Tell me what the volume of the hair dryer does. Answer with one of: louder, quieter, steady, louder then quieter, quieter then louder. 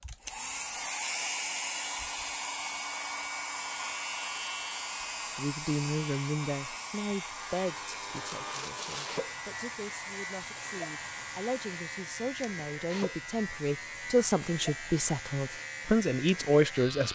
quieter.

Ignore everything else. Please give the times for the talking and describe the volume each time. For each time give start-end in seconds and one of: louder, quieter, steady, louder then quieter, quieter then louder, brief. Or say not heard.
5.2-17.1 quieter then louder.